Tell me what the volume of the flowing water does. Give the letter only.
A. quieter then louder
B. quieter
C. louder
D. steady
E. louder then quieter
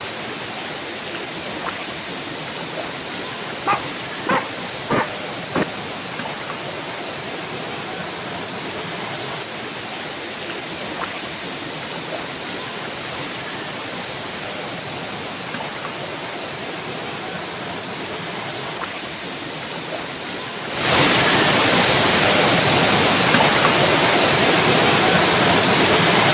C.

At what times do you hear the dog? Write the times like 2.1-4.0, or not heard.
3.6-5.7.